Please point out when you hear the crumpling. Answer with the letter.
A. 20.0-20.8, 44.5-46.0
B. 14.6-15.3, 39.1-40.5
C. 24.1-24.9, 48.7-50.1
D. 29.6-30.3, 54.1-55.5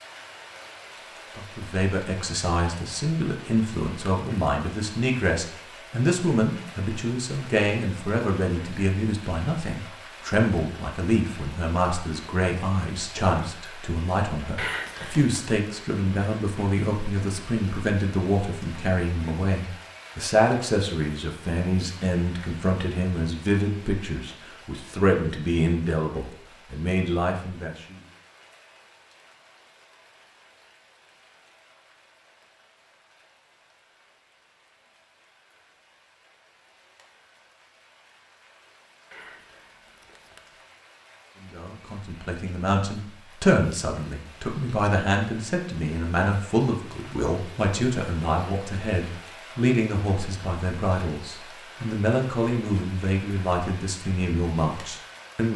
B.